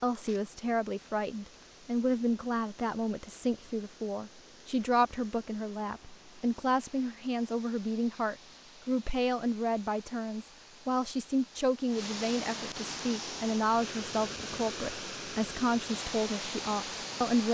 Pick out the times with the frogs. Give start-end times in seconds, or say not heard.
not heard.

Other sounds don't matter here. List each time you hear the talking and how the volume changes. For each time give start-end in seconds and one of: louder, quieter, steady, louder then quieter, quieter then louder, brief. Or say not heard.
0.0-17.4 steady.